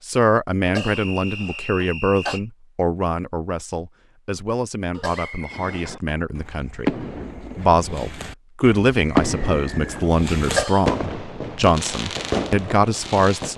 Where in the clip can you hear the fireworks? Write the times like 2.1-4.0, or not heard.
5.4-13.5.